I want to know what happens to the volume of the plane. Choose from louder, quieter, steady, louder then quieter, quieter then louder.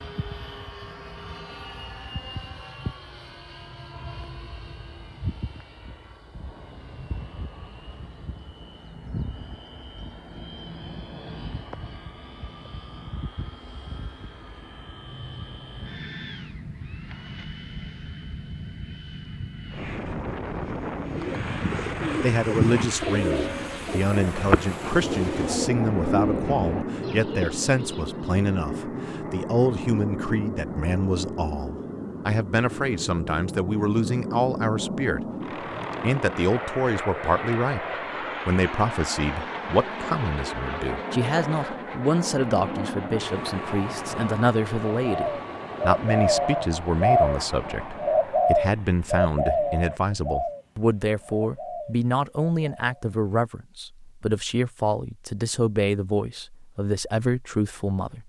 louder.